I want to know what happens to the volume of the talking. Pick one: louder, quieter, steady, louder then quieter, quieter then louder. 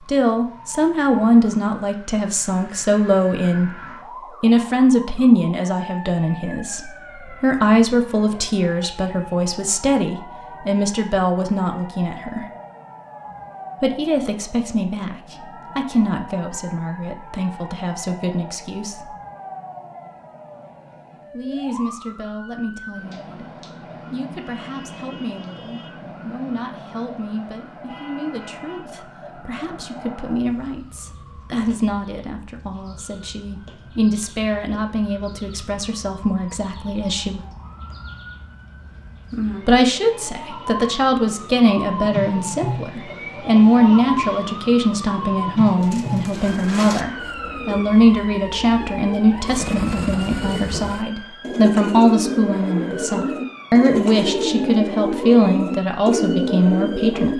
quieter then louder.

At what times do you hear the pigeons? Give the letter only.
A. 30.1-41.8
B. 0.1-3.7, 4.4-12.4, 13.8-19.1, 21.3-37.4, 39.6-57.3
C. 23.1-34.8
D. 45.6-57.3
D.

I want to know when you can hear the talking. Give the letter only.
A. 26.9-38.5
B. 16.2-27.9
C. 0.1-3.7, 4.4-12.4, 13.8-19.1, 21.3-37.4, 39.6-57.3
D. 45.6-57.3
C.